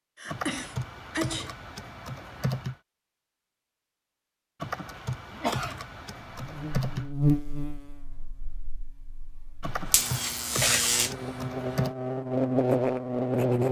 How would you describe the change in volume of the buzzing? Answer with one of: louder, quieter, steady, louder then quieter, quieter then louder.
quieter then louder.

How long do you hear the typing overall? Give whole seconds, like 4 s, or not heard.
7 s.